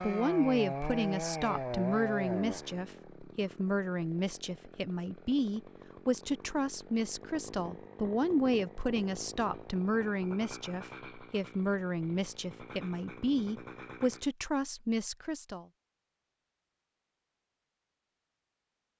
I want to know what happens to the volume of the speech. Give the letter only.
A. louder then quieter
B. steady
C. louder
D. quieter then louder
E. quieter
B.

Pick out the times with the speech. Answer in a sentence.
The speech can be heard from 0.0 to 15.7 s.